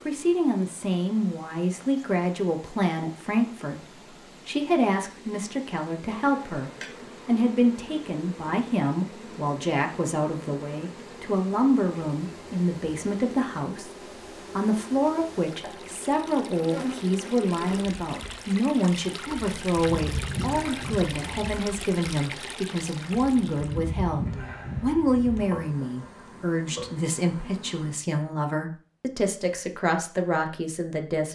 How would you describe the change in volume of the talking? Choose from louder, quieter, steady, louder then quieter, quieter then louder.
steady.